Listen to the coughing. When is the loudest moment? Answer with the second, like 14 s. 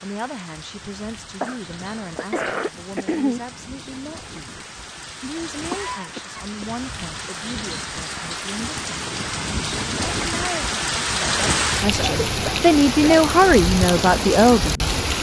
3 s.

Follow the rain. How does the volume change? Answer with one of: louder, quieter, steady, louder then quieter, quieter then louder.
louder.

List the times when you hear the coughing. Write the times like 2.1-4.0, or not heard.
1.4-3.4, 5.5-6.7, 11.9-13.3.